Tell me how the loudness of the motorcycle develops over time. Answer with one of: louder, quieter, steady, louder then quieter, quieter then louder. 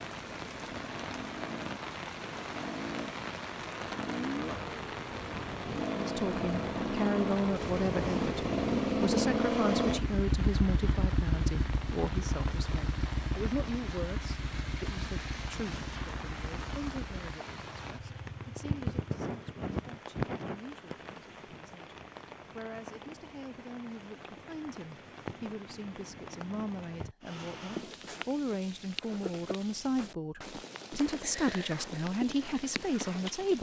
louder then quieter.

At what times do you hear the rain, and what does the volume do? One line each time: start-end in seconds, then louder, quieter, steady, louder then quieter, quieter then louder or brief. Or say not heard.
0.0-33.5 steady.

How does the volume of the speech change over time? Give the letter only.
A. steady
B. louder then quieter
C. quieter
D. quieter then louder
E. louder
D.